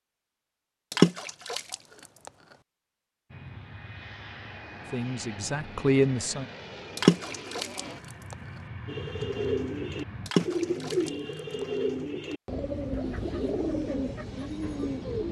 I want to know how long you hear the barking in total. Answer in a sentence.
The barking can't be heard in this clip.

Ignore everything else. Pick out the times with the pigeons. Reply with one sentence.
You can hear the pigeons from 8.8 to 15.2 s.